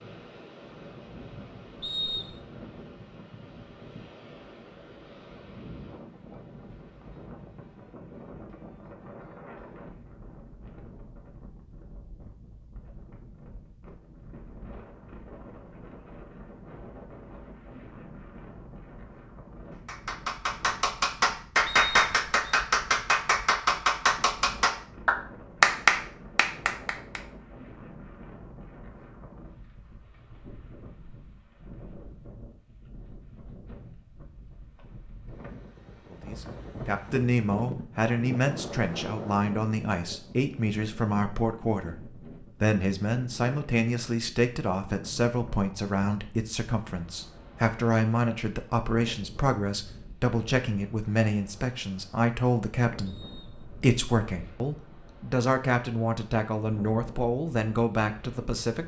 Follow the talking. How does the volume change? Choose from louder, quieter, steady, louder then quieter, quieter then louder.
steady.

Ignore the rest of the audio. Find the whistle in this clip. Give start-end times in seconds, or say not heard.
1.8-2.4, 21.6-22.6, 53.0-54.0.